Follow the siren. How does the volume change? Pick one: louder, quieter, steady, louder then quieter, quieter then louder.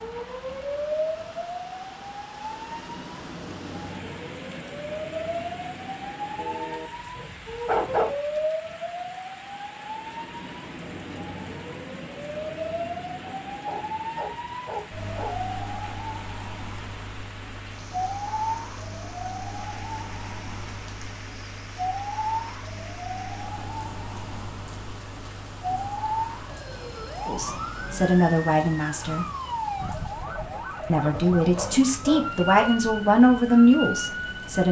steady.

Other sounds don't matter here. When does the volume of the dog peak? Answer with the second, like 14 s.
8 s.